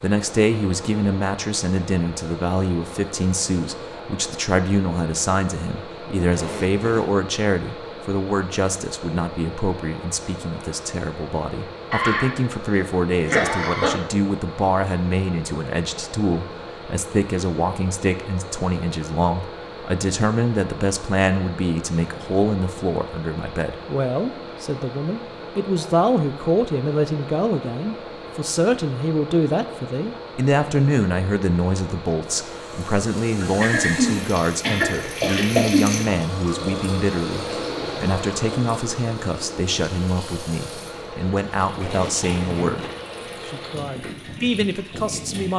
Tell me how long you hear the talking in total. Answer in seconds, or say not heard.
45 s.